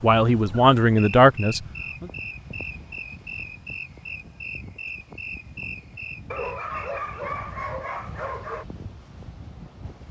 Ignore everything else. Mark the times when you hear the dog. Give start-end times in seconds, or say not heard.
6.3-8.7.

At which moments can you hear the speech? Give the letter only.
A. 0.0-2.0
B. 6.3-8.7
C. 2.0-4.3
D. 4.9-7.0
A.